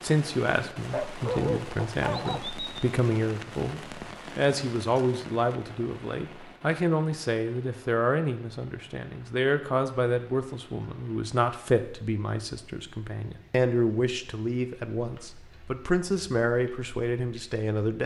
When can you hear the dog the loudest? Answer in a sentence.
The volume of the dog peaks at 1 second.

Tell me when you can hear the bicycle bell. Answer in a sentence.
You can't hear the bicycle bell here.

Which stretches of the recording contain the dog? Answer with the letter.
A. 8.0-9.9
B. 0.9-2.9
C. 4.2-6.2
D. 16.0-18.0
B.